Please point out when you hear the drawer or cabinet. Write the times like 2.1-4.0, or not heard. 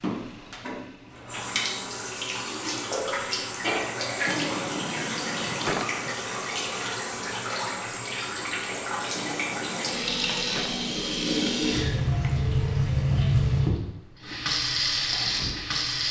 4.2-6.2, 9.2-10.8.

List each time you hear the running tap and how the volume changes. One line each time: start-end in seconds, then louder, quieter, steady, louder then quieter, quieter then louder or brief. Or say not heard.
0.0-16.0 louder.